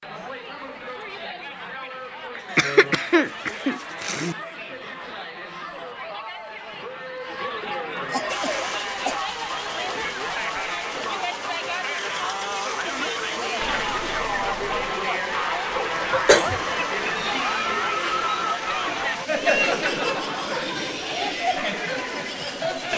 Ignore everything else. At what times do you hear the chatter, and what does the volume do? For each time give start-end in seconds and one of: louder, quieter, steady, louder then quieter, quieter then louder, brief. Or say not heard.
0.0-22.9 louder.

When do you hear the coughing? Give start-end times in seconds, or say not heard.
2.4-4.3, 8.1-9.2, 16.1-16.6.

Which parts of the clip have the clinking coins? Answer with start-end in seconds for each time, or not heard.
13.6-14.9.